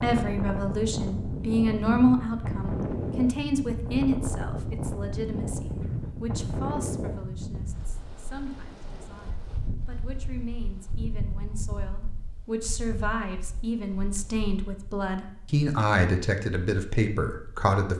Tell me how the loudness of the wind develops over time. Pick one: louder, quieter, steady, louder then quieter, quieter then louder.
quieter.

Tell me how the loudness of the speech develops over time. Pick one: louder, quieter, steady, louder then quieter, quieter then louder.
quieter then louder.